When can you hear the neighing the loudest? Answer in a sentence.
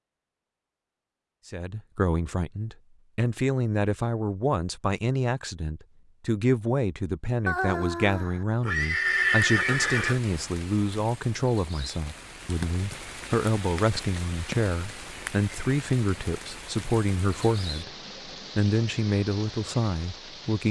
The loudest moment of the neighing is at 9 seconds.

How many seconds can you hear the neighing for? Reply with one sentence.
The neighing can be heard for 3 seconds in total.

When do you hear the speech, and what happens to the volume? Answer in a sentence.
The speech can be heard from 1.4 to 17.9 s, at a steady volume; and briefly from 18.6 to 20.6 s.